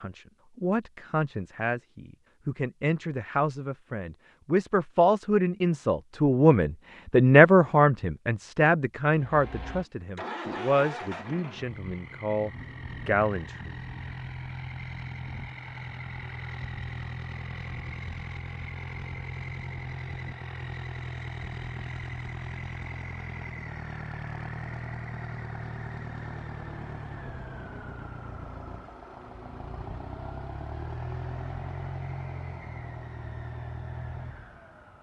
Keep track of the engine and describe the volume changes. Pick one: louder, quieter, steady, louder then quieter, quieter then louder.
steady.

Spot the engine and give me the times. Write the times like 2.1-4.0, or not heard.
9.1-34.9.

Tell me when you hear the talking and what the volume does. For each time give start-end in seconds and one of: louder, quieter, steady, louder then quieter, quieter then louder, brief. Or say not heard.
0.0-13.7 louder then quieter.